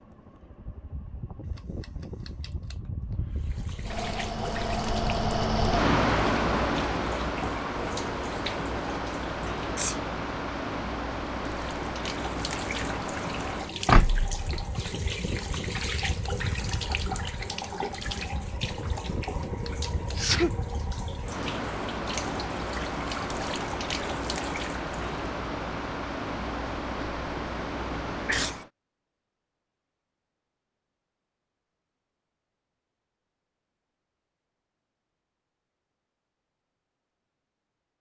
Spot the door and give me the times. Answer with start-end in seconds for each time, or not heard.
13.8-14.7.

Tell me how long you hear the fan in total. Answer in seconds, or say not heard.
29 s.